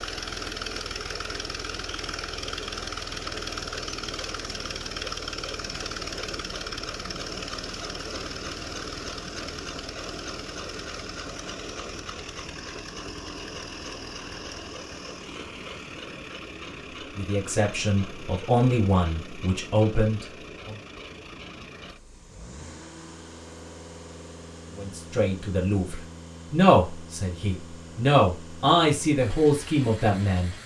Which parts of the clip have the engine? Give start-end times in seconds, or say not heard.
0.0-30.6.